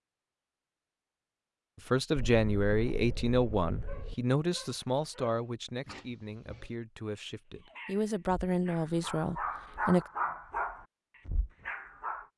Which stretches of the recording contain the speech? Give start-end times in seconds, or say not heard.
1.9-10.1.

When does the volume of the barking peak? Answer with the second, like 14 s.
10 s.